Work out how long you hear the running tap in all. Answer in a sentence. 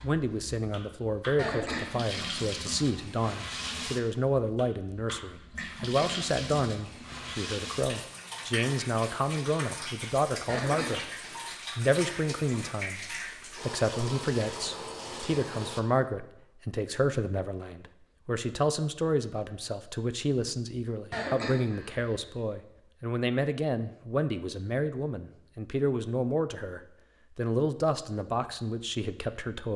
You can hear the running tap for 16 seconds altogether.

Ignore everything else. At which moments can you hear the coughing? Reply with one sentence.
You can hear the coughing from 1.4 to 2.0 s, from 10.4 to 11.4 s and from 21.1 to 22.1 s.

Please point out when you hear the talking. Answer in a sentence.
You can hear the talking from 0.0 to 11.1 s and from 11.8 to 29.7 s.